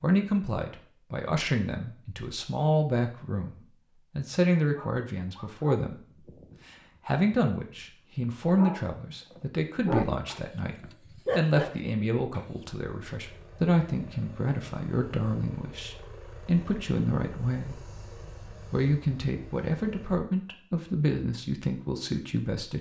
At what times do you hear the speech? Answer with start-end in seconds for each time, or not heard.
0.0-17.9, 18.7-22.7.